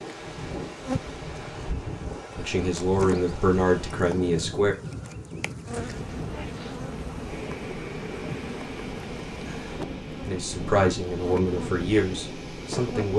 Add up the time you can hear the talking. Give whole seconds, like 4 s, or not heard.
5 s.